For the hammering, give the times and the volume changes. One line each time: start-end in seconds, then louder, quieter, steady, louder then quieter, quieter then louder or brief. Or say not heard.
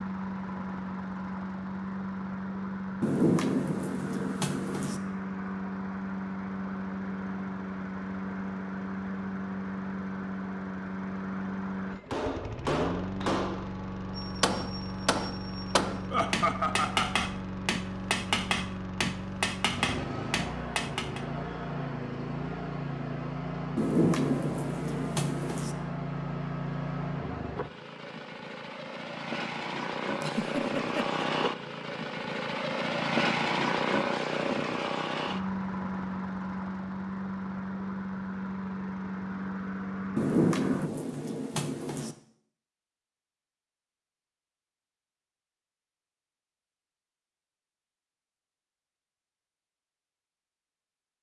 12.1-21.2 steady.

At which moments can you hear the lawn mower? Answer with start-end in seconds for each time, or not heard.
0.0-40.9.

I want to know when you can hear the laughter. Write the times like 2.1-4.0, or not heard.
16.1-17.3, 30.2-31.2.